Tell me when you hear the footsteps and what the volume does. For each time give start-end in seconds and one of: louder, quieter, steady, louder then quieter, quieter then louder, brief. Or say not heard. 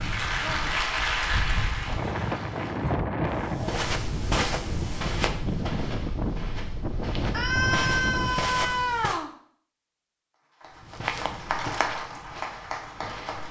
3.4-9.2 quieter then louder
10.7-13.4 brief.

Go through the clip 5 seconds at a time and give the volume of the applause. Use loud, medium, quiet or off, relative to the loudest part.
loud, off, medium.